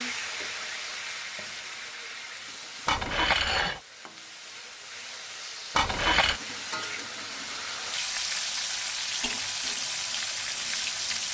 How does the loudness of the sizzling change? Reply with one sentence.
The loudness of the sizzling goes down, then up.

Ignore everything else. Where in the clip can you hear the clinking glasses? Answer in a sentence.
You can hear the clinking glasses from 2.9 to 3.8 s and from 5.8 to 6.4 s.